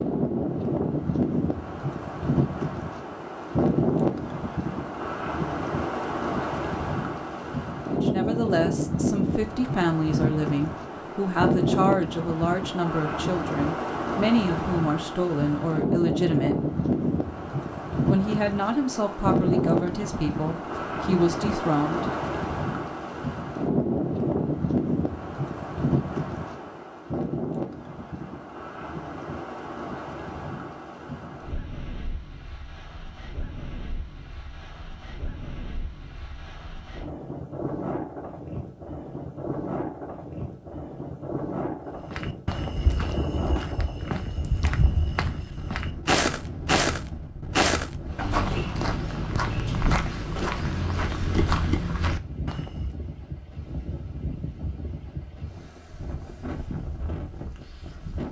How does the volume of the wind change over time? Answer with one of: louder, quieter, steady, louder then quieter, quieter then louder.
quieter.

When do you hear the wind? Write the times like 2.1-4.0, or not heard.
0.0-58.2.